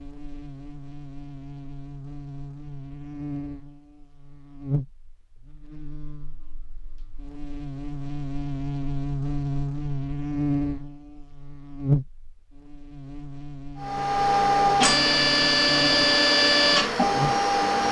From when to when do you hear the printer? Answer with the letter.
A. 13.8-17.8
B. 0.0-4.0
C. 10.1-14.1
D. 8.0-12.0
A.